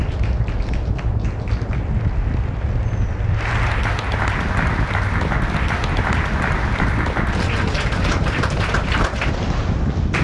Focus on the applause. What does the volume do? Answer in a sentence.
The volume of the applause goes up.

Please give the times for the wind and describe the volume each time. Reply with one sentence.
The wind can be heard from 0.0 to 10.1 s, at a steady volume.